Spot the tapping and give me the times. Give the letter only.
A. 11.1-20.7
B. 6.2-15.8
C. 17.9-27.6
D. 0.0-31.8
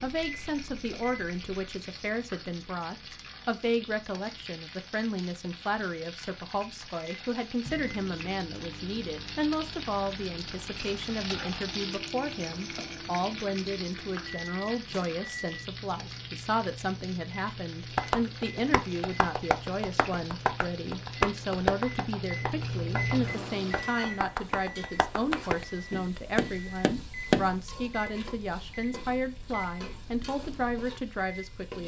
C.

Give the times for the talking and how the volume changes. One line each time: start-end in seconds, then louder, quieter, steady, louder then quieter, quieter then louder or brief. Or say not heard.
0.0-31.8 steady.